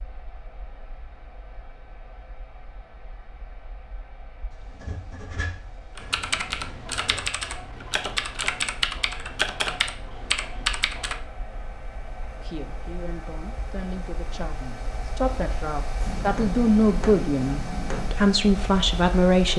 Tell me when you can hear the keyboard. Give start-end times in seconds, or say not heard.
6.0-11.2.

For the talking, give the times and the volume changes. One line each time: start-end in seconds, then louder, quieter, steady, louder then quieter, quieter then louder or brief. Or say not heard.
12.4-19.5 louder.